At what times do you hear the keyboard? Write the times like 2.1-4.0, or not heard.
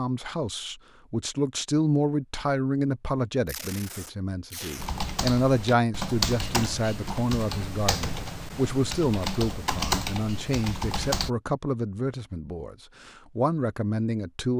4.8-11.3.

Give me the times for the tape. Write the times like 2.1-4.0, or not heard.
3.5-4.9.